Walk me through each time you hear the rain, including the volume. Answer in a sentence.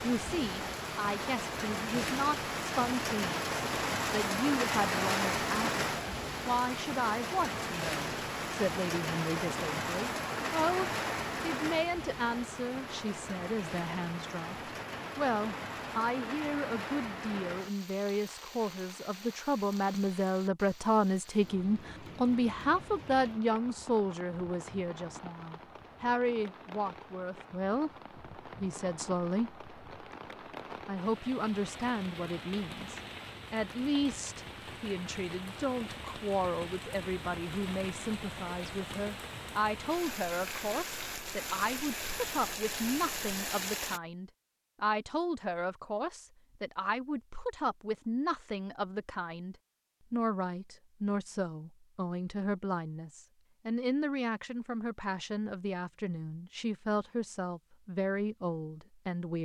You can hear the rain from 0.0 to 44.0 s, getting quieter then louder.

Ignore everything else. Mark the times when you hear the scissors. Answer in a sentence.
You can't hear the scissors here.